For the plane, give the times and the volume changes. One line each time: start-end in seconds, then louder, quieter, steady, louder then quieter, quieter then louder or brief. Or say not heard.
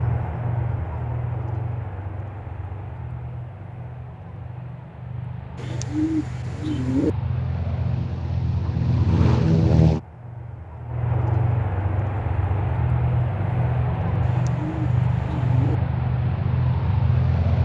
0.0-17.6 louder.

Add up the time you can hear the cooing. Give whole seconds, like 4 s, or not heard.
3 s.